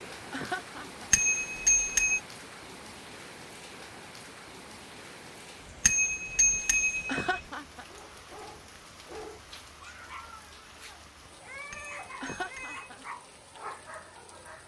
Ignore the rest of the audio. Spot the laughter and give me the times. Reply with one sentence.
You can hear the laughter from 0.3 to 1.1 s, from 7.0 to 7.8 s and from 12.2 to 13.1 s.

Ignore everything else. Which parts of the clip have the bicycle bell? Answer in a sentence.
You can hear the bicycle bell from 1.1 to 2.2 s, from 5.8 to 7.3 s and from 11.7 to 12.9 s.